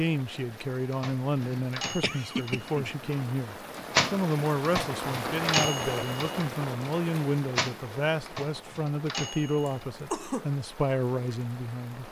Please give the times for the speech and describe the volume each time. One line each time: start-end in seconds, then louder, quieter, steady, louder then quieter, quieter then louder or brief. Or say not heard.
0.0-12.0 steady.